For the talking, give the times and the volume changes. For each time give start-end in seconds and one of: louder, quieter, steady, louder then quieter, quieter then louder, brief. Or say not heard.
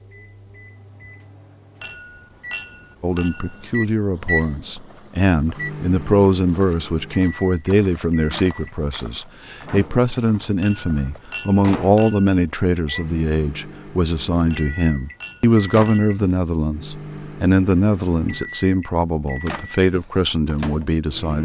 3.0-21.4 steady.